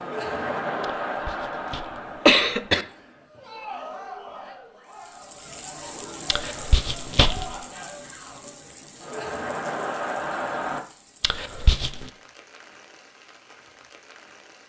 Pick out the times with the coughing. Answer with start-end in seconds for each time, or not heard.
0.8-2.9, 6.2-7.5, 11.2-12.1.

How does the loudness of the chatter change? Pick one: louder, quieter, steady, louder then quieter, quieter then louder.
quieter then louder.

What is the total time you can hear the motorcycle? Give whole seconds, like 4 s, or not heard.
not heard.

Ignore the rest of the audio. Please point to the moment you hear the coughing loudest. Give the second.
2 s.